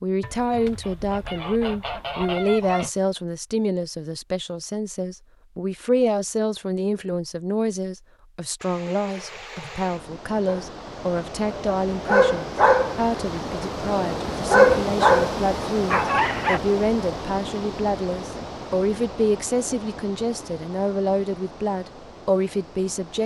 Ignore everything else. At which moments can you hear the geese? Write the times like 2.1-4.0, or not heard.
0.2-2.9.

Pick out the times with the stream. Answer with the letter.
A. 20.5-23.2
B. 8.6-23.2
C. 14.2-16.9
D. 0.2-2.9
B.